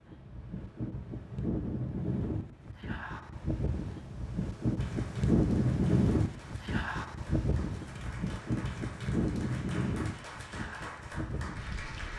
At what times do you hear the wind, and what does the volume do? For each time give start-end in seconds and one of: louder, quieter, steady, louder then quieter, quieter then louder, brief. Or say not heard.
0.0-12.1 louder then quieter.